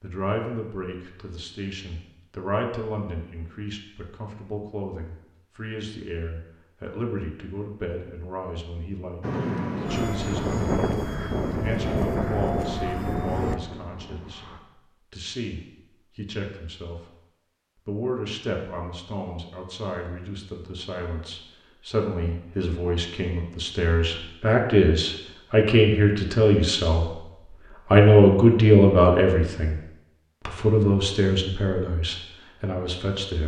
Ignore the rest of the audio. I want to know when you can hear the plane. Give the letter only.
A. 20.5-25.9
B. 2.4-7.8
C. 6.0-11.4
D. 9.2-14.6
D.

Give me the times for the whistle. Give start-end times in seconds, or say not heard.
not heard.